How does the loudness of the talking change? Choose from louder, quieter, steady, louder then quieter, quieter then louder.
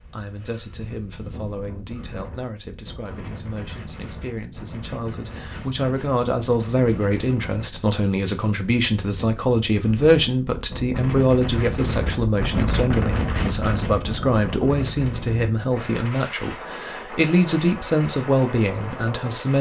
louder.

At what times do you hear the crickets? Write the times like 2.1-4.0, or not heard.
not heard.